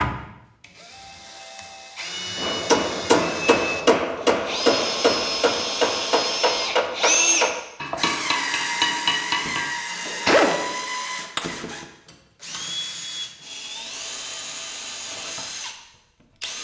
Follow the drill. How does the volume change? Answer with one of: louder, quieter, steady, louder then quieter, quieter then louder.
louder then quieter.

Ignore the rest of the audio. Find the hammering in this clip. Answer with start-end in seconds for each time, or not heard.
2.4-11.4.